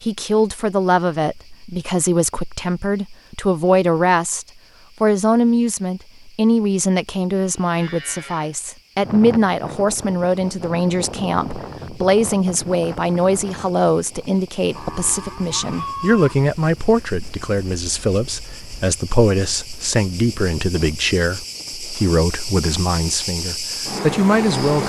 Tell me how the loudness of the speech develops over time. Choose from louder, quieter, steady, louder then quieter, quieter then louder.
steady.